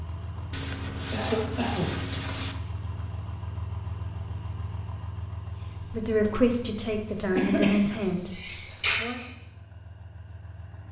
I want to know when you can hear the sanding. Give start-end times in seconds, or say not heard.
0.5-2.5, 7.0-8.9.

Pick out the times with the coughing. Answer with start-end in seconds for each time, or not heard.
1.1-2.0, 7.3-9.3.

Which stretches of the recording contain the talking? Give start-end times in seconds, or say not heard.
5.9-9.2.